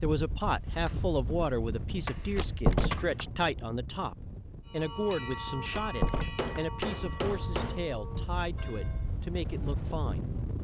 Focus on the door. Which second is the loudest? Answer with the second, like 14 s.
3 s.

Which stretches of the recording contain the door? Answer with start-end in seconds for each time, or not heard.
2.4-3.2, 5.7-6.6.